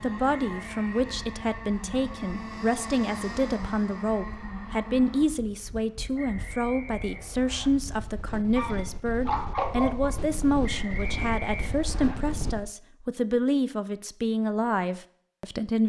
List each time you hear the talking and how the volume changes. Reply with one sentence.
The talking can be heard from 0.0 to 15.8 s, at a steady volume.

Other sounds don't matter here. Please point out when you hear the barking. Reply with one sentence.
You can hear the barking from 8.6 to 10.2 s.